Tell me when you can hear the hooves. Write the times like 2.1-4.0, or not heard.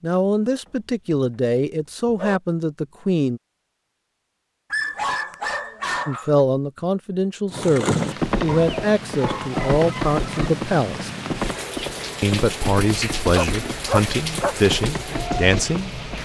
7.5-16.1.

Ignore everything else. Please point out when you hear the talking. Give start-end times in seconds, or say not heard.
0.0-3.4, 6.0-11.1, 12.2-15.9.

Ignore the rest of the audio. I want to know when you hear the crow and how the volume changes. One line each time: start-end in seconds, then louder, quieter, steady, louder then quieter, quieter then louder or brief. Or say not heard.
not heard.